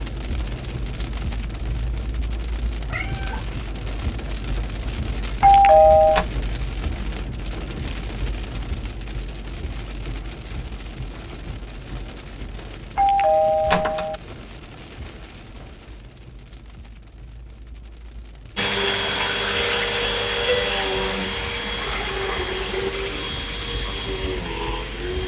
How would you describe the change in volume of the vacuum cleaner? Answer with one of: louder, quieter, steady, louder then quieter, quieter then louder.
quieter.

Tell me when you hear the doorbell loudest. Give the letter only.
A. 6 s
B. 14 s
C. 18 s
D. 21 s
A.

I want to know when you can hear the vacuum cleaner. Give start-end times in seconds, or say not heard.
18.6-25.2.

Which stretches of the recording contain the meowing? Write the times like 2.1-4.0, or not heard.
2.9-3.5.